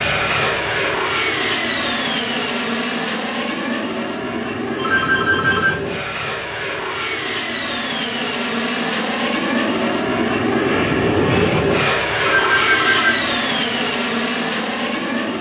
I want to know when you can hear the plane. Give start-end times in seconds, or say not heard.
0.0-15.3.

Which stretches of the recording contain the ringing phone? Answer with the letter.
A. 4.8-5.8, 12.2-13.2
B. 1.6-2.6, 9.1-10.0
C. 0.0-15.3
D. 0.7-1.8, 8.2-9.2
A.